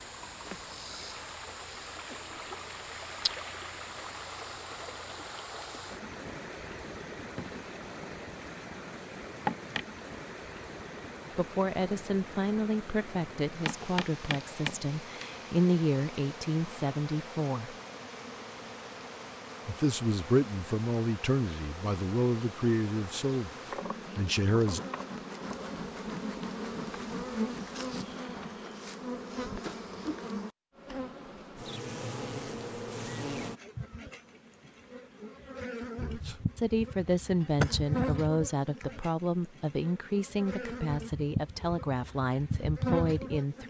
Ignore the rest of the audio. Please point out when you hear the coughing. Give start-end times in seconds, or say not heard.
37.6-38.1.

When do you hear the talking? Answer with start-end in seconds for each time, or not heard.
11.3-17.8, 19.6-23.5, 24.1-24.8, 36.0-43.6.